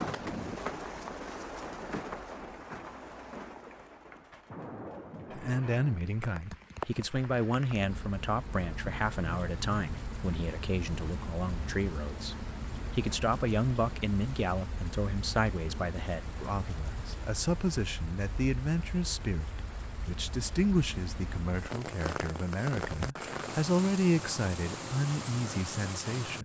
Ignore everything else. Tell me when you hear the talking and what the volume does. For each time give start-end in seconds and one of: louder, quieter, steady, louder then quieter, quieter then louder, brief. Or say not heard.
5.3-26.4 steady.